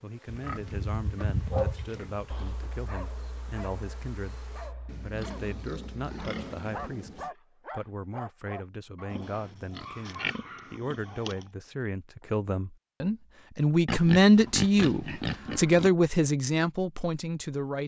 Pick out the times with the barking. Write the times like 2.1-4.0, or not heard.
1.5-11.3.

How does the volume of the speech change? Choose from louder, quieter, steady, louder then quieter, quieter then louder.
louder.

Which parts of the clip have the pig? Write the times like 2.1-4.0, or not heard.
0.2-2.6, 4.8-7.3, 9.1-11.4, 13.8-15.9.